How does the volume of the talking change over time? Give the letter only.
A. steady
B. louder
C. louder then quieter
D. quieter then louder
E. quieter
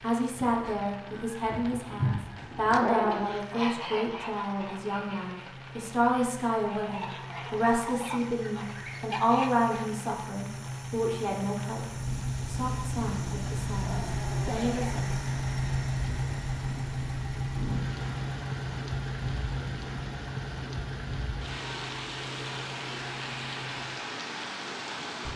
E.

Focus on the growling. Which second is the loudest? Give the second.
3 s.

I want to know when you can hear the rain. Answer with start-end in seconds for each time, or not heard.
0.0-25.3.